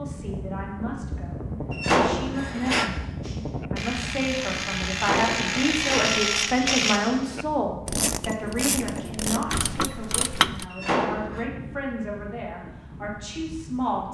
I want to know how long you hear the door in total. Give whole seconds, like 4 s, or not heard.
4 s.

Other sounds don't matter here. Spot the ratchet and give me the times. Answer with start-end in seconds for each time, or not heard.
3.2-10.7.